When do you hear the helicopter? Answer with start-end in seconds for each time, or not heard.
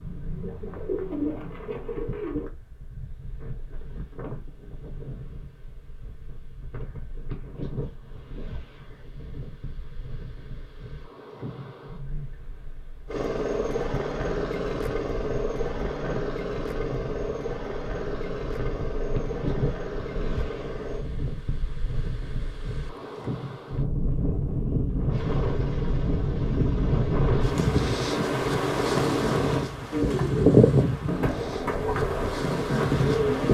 13.1-21.1, 25.1-29.6.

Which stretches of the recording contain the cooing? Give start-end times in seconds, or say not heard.
0.0-2.5, 29.9-33.4.